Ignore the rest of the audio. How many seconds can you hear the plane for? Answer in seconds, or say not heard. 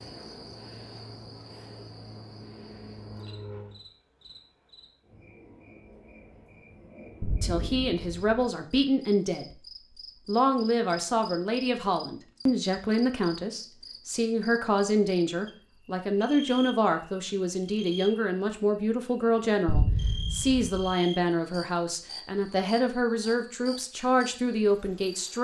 4 s.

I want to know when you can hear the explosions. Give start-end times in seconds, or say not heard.
7.2-8.4, 19.6-20.9.